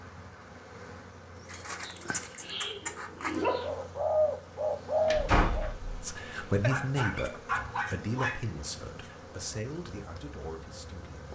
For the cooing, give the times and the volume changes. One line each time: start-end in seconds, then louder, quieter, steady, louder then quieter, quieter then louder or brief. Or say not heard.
1.4-5.7 louder.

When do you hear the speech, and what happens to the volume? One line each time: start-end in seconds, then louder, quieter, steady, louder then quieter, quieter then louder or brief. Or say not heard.
6.0-11.3 quieter.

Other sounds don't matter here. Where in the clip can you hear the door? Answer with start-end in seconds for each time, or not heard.
5.0-6.7.